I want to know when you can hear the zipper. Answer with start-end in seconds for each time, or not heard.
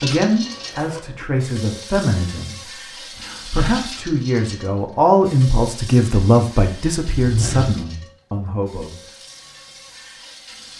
0.5-1.1, 7.1-7.8.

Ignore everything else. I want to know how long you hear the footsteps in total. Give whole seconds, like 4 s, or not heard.
not heard.